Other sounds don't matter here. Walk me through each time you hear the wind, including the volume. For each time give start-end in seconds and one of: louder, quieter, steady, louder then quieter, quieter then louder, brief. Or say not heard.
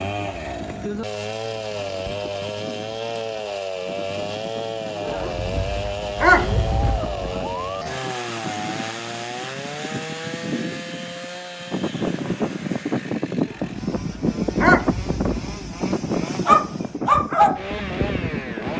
0.0-18.7 louder.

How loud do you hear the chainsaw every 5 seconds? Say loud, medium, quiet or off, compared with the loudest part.
loud, loud, medium, medium.